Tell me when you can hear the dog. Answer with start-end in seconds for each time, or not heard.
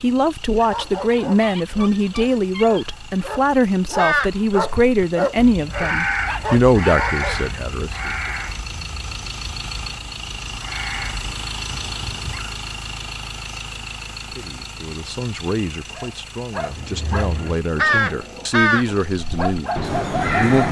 0.6-7.5, 15.9-20.6.